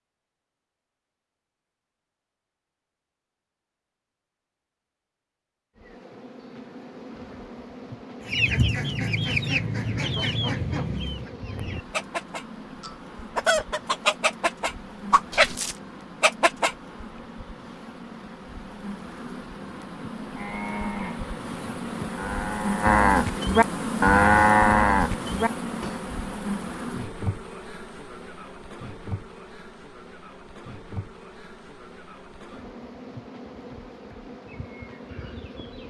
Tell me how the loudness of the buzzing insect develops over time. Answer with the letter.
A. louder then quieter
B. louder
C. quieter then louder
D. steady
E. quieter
A.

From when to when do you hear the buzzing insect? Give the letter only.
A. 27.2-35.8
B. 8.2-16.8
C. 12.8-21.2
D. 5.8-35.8
D.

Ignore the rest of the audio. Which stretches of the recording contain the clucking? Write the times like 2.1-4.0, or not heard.
8.2-16.8.